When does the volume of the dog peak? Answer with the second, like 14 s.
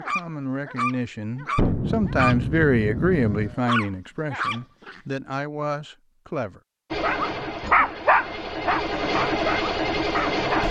8 s.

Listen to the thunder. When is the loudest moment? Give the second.
2 s.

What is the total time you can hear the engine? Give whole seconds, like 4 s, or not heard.
4 s.